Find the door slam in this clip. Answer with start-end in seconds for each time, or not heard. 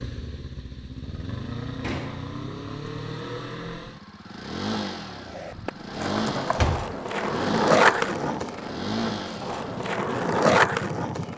1.8-2.4, 6.5-7.0.